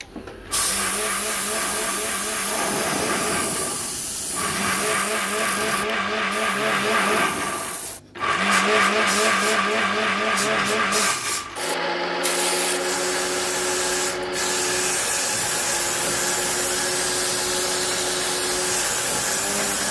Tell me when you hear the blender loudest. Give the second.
9 s.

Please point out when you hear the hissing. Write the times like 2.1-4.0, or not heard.
0.0-19.8.